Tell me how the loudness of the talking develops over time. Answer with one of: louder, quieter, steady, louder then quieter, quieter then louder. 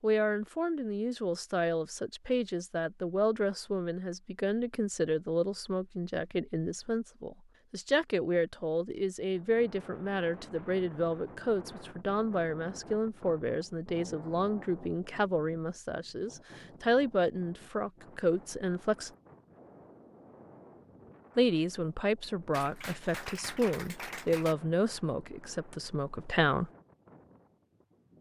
steady.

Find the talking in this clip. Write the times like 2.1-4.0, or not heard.
0.0-19.1, 21.4-26.7.